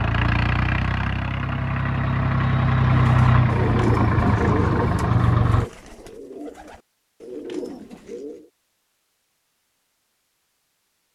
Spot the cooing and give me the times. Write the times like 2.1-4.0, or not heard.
3.0-8.4.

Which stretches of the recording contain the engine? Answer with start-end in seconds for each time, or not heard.
0.0-5.7.